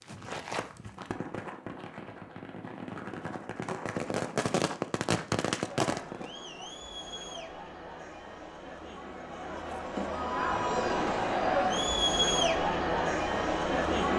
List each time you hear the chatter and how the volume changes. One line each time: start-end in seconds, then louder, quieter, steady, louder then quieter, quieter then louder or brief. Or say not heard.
5.8-14.1 louder.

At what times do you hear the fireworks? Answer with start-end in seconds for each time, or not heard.
0.0-6.3.